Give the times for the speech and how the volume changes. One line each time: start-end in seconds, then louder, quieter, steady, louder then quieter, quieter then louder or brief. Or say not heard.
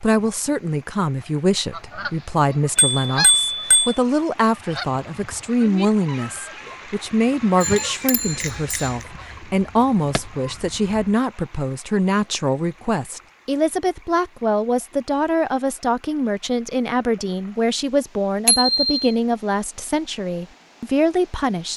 0.0-21.7 steady.